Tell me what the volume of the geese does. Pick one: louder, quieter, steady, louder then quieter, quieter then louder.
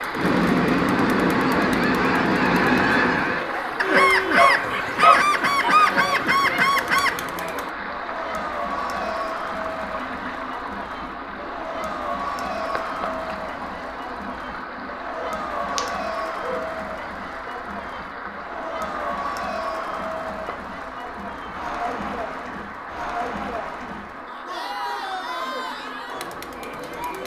steady.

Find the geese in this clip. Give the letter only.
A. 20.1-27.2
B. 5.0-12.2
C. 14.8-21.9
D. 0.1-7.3
D.